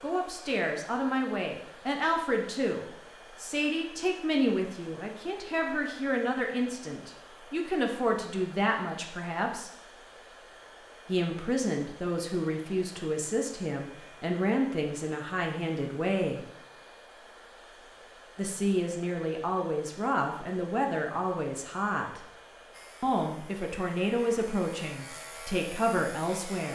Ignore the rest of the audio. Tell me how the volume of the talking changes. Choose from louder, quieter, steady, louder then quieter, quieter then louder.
steady.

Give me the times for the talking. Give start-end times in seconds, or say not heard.
0.0-9.7, 11.1-16.4, 18.4-22.2, 23.0-26.6.